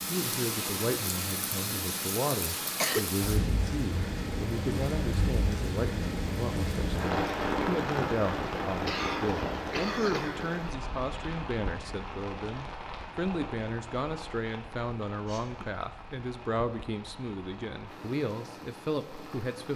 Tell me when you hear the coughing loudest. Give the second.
3 s.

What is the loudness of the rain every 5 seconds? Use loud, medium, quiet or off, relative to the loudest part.
loud, loud, medium, quiet.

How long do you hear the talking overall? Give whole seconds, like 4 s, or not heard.
20 s.